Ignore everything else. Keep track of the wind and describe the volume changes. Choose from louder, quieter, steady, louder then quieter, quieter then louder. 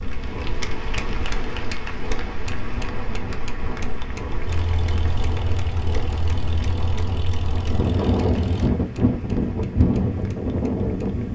louder.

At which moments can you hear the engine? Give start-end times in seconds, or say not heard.
4.5-8.7.